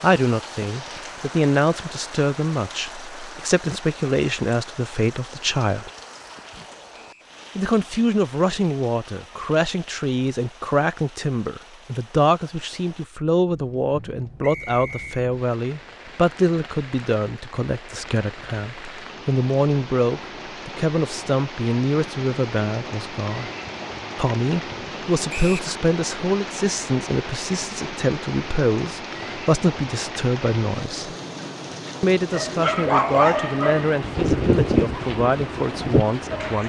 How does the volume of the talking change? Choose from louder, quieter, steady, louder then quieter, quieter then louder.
steady.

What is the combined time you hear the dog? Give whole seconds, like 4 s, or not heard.
4 s.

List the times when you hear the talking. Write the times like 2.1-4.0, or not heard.
0.0-5.9, 7.5-23.5, 24.1-31.1, 32.0-36.6.